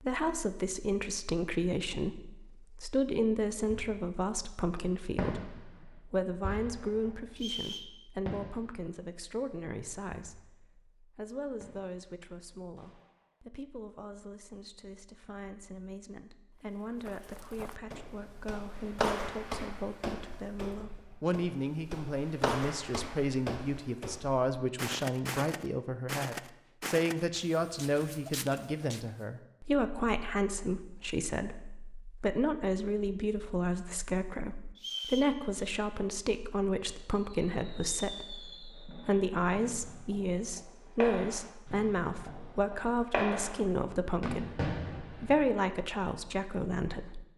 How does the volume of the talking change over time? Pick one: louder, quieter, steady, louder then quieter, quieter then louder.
quieter then louder.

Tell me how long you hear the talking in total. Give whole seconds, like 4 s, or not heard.
47 s.